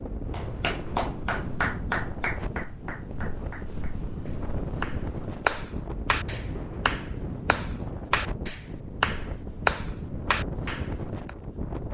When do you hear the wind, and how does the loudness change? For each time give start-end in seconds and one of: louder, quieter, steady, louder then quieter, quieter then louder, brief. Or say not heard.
0.0-11.8 steady.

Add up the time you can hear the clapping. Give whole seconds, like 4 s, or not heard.
11 s.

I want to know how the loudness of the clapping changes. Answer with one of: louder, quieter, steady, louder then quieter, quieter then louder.
quieter then louder.